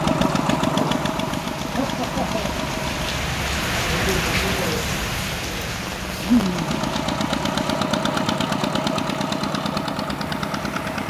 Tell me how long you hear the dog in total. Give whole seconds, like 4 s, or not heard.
not heard.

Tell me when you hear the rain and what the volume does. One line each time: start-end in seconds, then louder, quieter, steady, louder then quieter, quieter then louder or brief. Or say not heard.
0.0-11.0 louder then quieter.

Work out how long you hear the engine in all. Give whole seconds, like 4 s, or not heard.
8 s.